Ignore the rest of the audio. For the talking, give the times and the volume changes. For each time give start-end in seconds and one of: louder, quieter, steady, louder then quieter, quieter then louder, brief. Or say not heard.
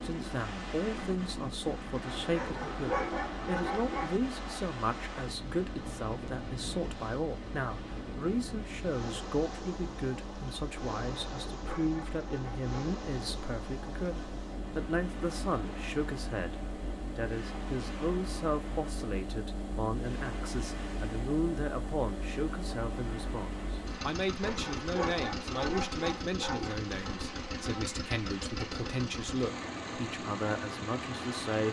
0.0-31.6 steady.